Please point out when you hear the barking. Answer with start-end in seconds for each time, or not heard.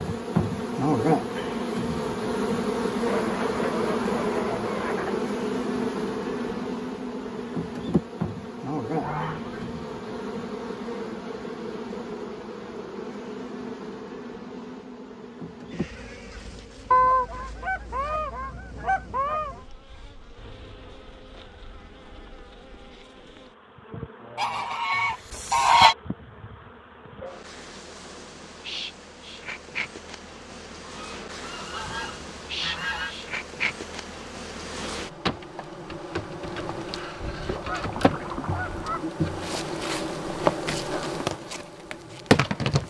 not heard.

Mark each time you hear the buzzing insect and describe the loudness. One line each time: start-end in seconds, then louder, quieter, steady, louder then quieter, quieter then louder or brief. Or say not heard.
0.0-42.8 quieter then louder.